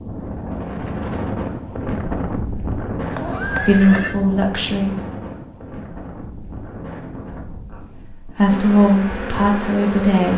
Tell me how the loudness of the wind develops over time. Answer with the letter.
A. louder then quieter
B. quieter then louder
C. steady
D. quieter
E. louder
D.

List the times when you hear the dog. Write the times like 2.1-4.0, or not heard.
not heard.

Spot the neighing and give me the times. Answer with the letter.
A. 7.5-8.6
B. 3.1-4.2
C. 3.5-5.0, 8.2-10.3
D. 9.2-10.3
B.